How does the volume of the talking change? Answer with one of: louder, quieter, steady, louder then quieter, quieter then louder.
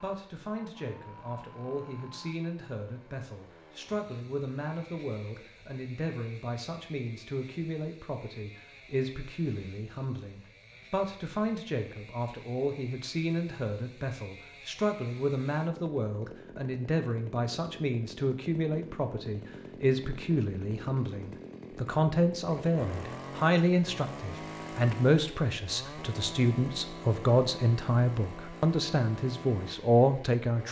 louder.